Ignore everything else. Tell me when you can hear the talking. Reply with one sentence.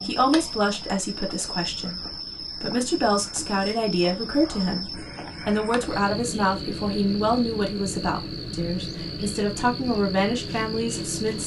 The talking can be heard from 0.0 to 11.4 s.